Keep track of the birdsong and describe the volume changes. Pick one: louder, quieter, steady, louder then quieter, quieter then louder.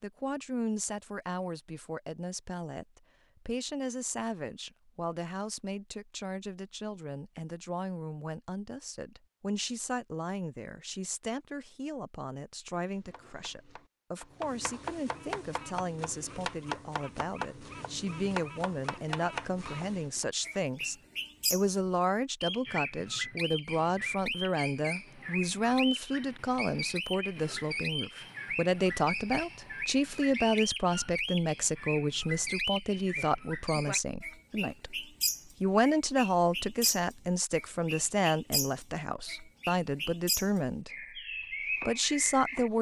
louder.